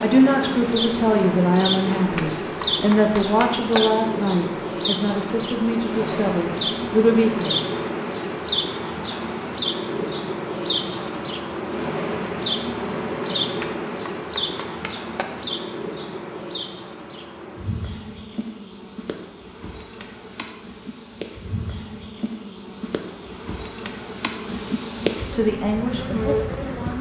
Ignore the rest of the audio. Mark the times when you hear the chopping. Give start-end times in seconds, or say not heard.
2.1-3.8, 13.6-15.2.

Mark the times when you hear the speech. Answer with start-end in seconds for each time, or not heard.
0.0-7.6, 25.3-26.9.